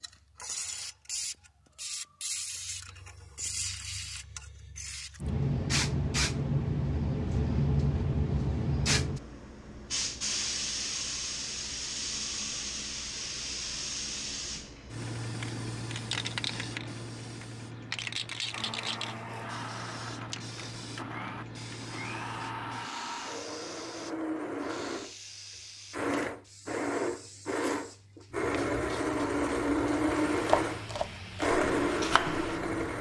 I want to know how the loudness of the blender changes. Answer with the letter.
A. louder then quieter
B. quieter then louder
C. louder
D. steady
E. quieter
C.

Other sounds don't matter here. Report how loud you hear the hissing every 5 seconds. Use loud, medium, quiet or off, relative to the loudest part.
medium, loud, medium, medium, quiet, quiet, quiet.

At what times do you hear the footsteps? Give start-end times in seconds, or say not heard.
not heard.